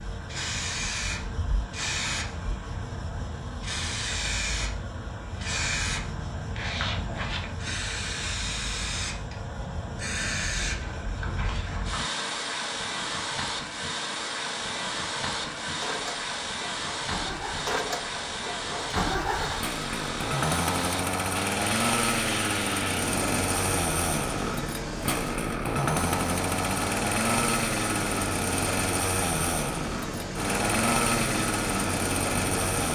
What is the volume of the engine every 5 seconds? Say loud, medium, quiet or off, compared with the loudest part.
quiet, quiet, quiet, medium, loud, loud, loud.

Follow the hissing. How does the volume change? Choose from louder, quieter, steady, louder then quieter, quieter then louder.
steady.